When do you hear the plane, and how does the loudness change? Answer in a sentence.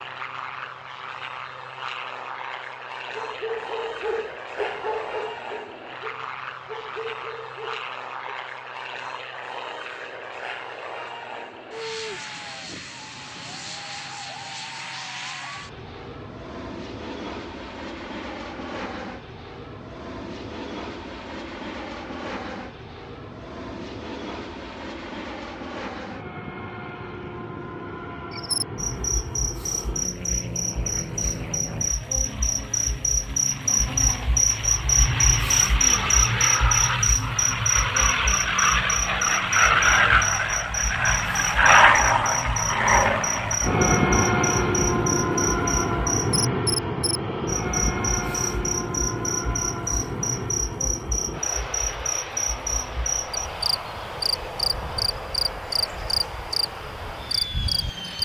You can hear the plane from 0.0 to 58.2 s, getting louder then quieter.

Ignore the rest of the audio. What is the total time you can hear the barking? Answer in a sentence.
You can hear the barking for 5 seconds altogether.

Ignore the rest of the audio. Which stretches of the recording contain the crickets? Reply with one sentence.
The crickets can be heard from 28.3 to 58.2 s.